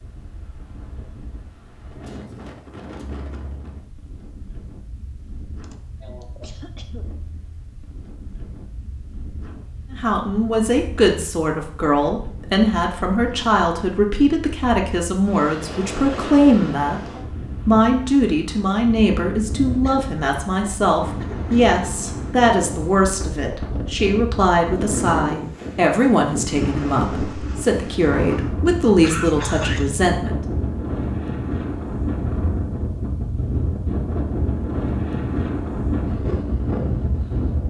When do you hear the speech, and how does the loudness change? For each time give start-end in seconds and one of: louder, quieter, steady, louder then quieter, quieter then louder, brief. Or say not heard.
9.9-30.4 steady.